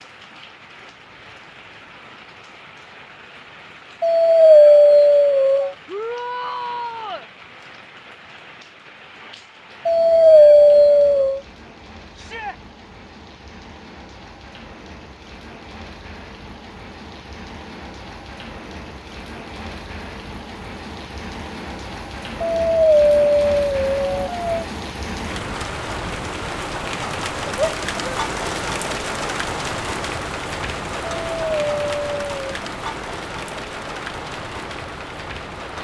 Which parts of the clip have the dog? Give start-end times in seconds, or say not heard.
4.0-5.7, 9.8-11.4, 22.4-24.6, 31.0-32.4.